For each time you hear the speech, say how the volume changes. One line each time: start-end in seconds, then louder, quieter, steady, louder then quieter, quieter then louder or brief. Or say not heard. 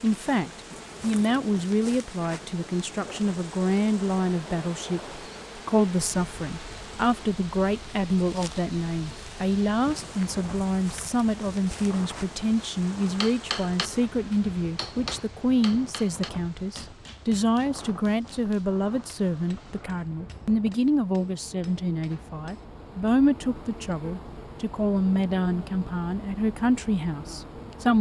0.0-27.9 steady.